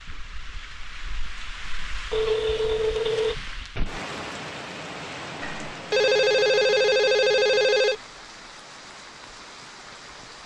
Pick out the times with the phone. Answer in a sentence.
You can hear the phone from 2.1 to 3.4 s and from 5.4 to 8.0 s.